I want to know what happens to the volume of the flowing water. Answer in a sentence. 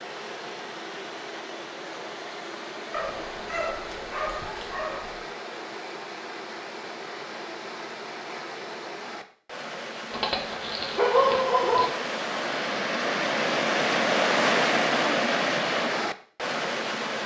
The volume of the flowing water goes up.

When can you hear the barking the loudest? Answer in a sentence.
The volume of the barking peaks at 11 seconds.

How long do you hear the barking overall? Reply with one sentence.
You can hear the barking for 4 seconds altogether.